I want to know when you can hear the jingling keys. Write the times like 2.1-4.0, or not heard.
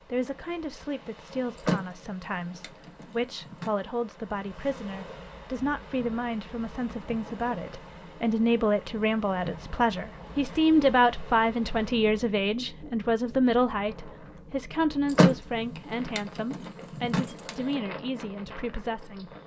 1.6-3.7, 15.1-17.8.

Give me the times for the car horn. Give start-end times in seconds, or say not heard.
not heard.